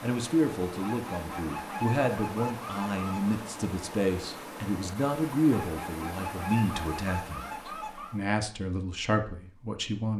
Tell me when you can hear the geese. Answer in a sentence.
You can hear the geese from 0.8 to 3.4 s and from 5.5 to 8.2 s.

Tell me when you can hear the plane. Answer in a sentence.
The plane can't be heard in this clip.